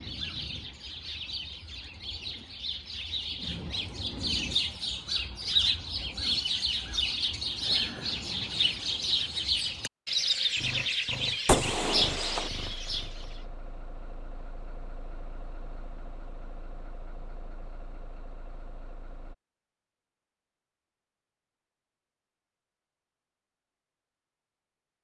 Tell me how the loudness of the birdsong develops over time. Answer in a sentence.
The volume of the birdsong goes up.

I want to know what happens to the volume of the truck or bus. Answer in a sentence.
The volume of the truck or bus stays about the same.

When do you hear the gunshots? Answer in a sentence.
You can hear the gunshots from 11.4 to 12.5 s.